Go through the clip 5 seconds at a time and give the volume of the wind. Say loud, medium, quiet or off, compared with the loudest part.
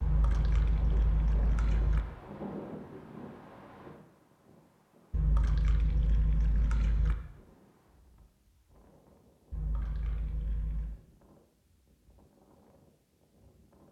loud, quiet, quiet.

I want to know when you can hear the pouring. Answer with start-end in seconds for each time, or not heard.
0.0-2.0, 5.1-7.2, 9.5-10.9.